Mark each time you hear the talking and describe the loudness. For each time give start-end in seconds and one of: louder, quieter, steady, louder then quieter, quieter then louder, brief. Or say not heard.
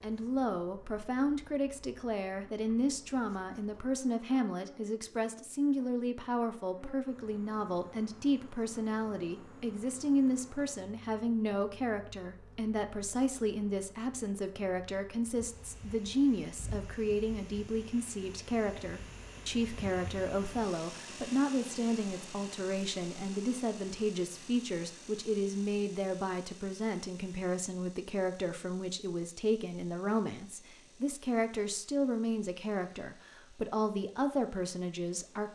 0.0-35.5 steady.